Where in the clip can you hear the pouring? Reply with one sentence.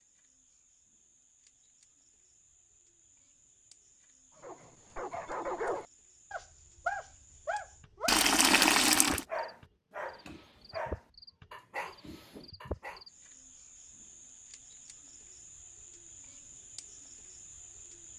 The pouring can be heard from 8.1 to 9.2 s.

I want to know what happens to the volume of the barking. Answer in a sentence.
The loudness of the barking goes down.